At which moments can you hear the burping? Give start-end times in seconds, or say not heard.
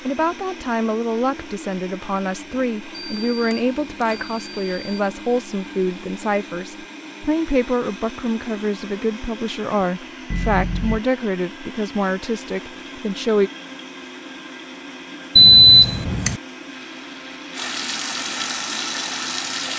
not heard.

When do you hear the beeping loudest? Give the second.
16 s.